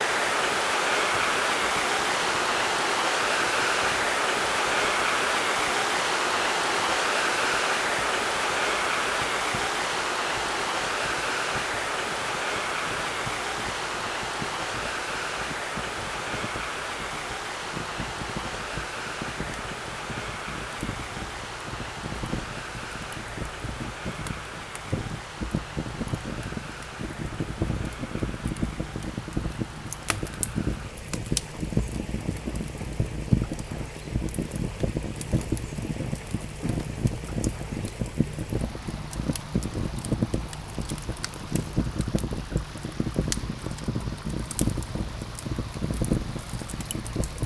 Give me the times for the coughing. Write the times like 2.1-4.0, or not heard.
not heard.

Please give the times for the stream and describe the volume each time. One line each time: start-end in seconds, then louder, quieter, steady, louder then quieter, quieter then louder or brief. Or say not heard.
0.0-47.4 quieter.